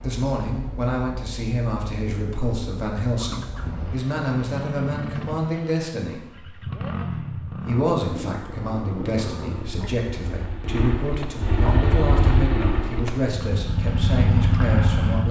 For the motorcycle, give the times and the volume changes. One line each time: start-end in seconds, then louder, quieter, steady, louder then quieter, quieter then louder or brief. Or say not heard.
0.0-15.2 louder.